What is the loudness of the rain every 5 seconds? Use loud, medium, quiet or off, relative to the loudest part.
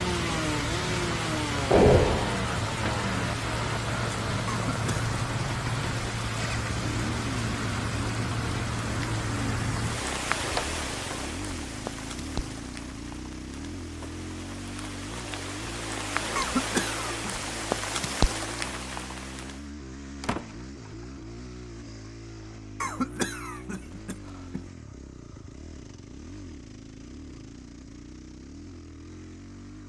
loud, loud, medium, loud, off, off.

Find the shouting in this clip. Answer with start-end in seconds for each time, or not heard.
not heard.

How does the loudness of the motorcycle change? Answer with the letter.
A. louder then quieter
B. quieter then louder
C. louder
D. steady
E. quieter
E.